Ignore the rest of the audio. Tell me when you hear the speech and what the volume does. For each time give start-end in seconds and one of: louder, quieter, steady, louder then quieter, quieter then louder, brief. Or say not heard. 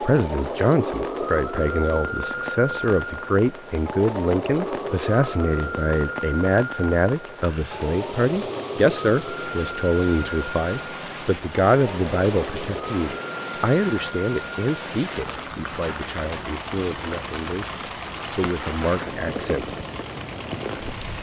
0.0-19.8 quieter.